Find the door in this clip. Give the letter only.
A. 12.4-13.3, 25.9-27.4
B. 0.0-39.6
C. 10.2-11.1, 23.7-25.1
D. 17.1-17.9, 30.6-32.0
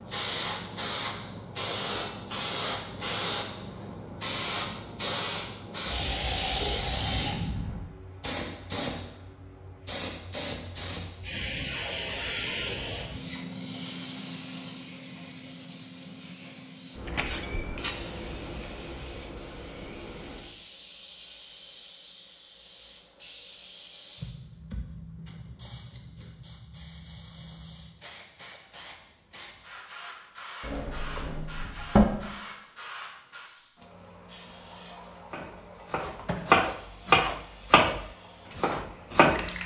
D.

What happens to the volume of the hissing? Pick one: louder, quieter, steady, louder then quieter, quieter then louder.
quieter.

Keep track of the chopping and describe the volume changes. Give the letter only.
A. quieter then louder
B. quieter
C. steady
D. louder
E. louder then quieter
E.